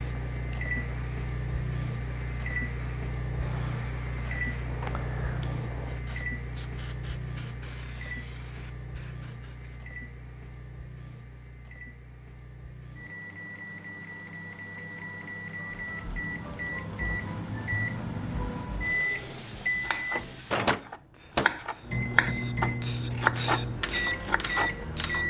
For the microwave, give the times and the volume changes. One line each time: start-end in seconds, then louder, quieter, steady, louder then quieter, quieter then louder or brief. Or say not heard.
0.0-25.2 quieter then louder.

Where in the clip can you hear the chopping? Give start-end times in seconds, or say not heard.
19.7-24.8.